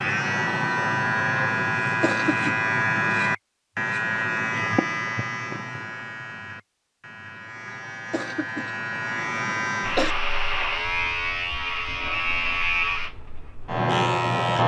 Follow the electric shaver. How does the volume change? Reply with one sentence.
The loudness of the electric shaver goes down, then up.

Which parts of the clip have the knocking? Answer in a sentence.
The knocking can't be heard in this clip.